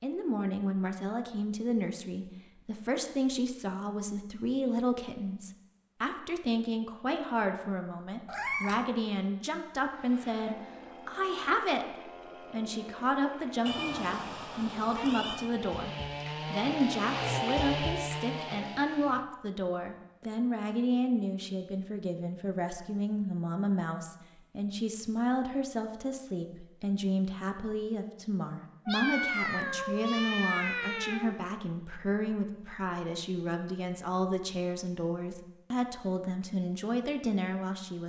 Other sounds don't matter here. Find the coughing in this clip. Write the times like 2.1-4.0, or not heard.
not heard.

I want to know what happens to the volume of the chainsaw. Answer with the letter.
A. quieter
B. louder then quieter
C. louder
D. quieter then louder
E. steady
C.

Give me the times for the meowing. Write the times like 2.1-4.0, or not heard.
8.2-8.8, 13.7-15.6, 28.9-31.4.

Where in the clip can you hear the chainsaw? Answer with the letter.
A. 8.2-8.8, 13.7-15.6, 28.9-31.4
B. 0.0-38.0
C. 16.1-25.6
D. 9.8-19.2
D.